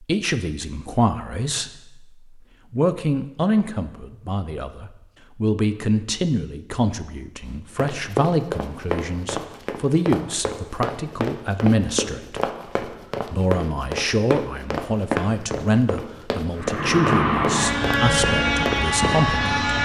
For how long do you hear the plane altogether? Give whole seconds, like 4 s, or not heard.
3 s.